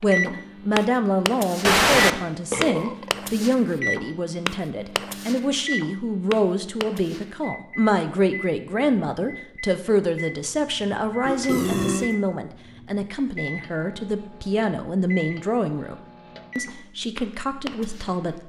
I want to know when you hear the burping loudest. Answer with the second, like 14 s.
2 s.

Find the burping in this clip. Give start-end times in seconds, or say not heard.
1.6-3.5, 11.2-12.1.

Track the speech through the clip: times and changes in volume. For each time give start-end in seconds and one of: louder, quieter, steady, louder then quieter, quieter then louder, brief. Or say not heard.
0.0-15.9 steady
16.6-18.4 brief.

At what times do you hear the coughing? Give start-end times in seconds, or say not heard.
not heard.